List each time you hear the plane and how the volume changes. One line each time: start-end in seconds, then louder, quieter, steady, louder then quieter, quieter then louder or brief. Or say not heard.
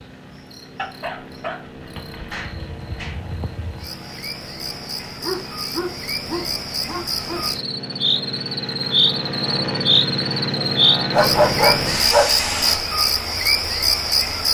0.0-12.8 louder.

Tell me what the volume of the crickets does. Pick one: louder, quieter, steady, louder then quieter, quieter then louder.
louder.